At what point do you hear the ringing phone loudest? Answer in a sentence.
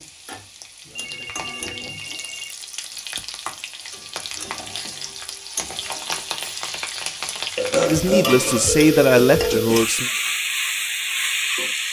The loudest moment of the ringing phone is at 9 seconds.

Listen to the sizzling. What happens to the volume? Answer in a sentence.
The loudness of the sizzling goes up.